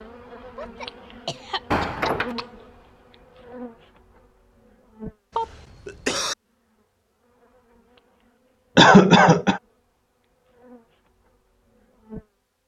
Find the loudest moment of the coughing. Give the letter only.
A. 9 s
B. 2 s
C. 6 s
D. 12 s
A.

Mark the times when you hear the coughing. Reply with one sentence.
You can hear the coughing from 0.6 to 2.5 s, from 5.3 to 6.3 s and from 8.8 to 9.6 s.